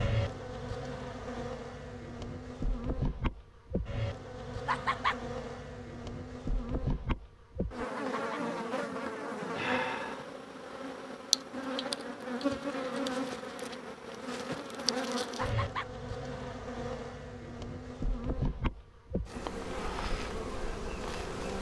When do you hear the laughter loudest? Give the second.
5 s.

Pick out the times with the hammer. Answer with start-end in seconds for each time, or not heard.
not heard.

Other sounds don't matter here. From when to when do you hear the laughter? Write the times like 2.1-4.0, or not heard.
4.7-5.2, 8.0-8.4, 15.3-15.9.